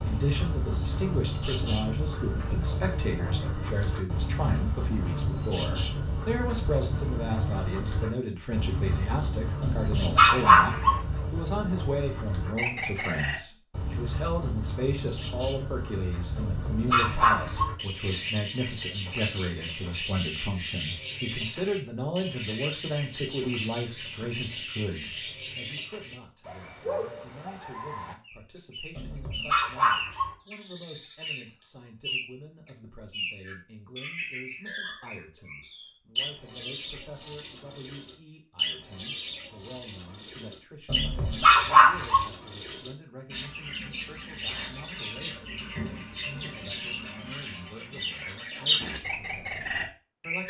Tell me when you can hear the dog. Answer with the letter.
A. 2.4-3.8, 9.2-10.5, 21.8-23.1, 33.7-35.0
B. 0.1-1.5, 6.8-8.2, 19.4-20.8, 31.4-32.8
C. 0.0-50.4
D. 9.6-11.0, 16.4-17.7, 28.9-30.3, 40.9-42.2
D.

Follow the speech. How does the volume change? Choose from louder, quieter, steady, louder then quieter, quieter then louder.
quieter.